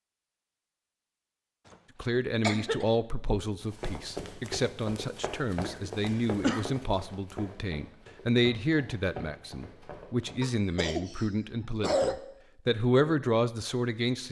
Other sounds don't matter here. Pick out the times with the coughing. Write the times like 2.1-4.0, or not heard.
2.4-2.9, 5.6-6.7, 10.4-12.2.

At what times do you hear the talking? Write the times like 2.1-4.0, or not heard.
2.0-14.2.